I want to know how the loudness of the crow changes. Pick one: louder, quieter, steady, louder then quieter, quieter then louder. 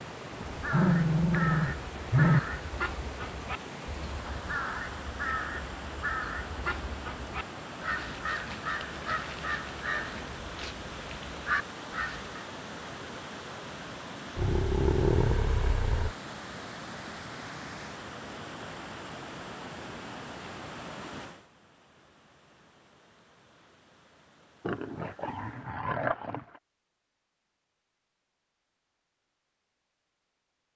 steady.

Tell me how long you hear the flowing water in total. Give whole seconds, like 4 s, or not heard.
26 s.